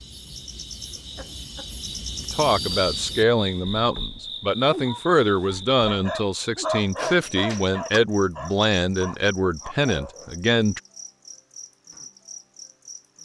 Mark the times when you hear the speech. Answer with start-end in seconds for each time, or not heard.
2.2-10.8.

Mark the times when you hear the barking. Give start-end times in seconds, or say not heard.
4.8-10.3.